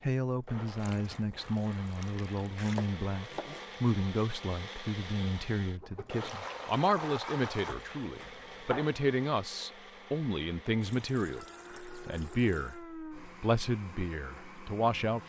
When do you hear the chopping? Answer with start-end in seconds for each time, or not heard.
2.6-3.6, 7.7-9.0.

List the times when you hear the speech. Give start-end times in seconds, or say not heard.
0.0-15.2.